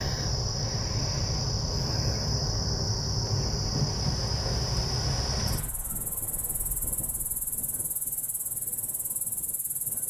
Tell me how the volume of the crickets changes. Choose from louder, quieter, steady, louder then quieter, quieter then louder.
quieter.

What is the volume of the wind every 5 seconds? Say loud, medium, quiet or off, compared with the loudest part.
loud, medium.